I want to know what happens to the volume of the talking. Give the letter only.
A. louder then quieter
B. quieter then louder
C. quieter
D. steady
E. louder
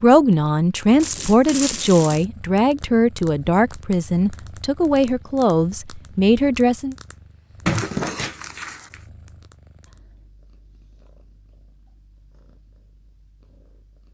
D.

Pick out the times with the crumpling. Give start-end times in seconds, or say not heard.
1.0-2.2, 7.7-9.0.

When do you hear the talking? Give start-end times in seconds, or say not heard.
0.0-7.0.